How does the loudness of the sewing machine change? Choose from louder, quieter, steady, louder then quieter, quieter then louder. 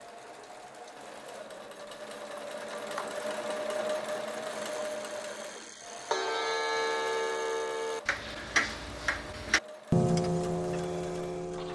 louder then quieter.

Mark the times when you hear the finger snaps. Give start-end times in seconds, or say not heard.
not heard.